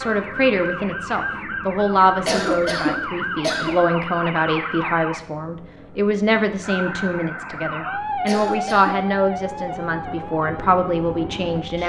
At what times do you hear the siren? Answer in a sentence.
You can hear the siren from 0.0 to 5.2 s and from 6.6 to 11.8 s.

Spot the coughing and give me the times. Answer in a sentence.
The coughing can be heard from 2.2 to 3.8 s and from 8.2 to 9.1 s.